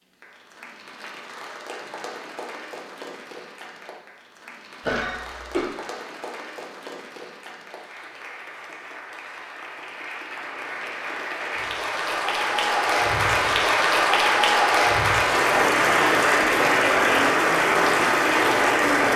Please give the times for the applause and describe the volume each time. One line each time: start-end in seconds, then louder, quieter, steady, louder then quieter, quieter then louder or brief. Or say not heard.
0.0-19.1 louder.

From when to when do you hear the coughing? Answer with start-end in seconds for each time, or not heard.
4.8-5.7.